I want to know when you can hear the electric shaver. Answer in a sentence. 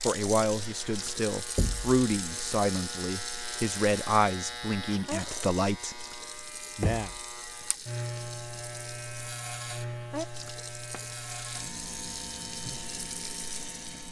The electric shaver can be heard from 0.0 to 14.0 s.